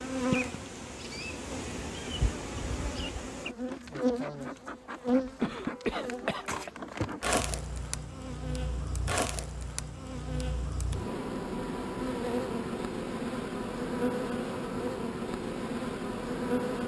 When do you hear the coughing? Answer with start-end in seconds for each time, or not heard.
5.4-6.7.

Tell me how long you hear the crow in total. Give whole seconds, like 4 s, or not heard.
not heard.